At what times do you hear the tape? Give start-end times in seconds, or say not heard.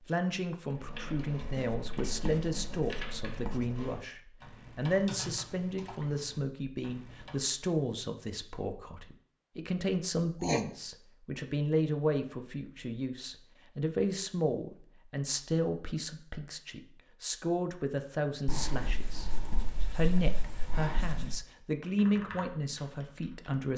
not heard.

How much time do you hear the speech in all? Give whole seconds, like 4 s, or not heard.
23 s.